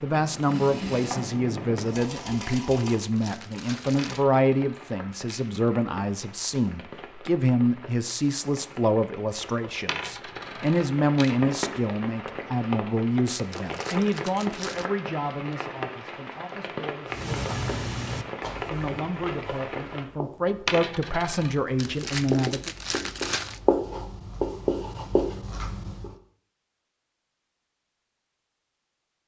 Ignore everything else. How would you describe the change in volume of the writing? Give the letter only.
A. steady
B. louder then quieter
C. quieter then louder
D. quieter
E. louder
C.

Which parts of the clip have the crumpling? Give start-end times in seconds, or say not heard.
2.4-4.2, 13.5-14.9, 21.8-23.6.